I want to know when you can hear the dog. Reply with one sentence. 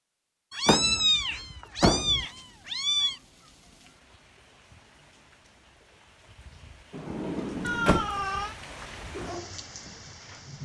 You can hear the dog from 8.6 to 10.6 s.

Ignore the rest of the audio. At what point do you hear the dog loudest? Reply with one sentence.
The loudest moment of the dog is at 9 seconds.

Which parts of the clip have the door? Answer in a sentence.
The door can be heard from 0.7 to 2.2 s and from 6.9 to 8.1 s.